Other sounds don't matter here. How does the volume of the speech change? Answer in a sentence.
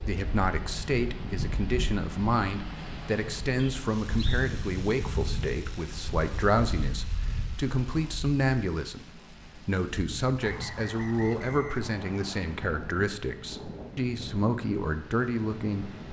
The loudness of the speech stays about the same.